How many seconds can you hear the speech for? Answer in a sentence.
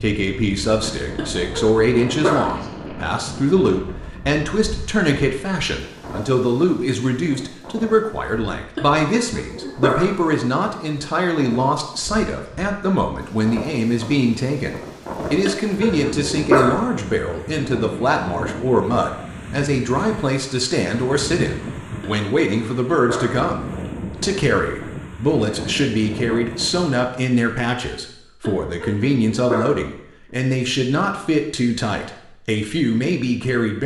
You can hear the speech for 34 seconds altogether.